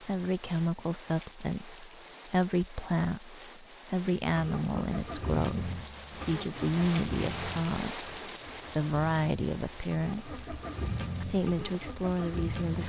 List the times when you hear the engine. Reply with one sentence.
The engine can be heard from 4.2 to 12.8 s.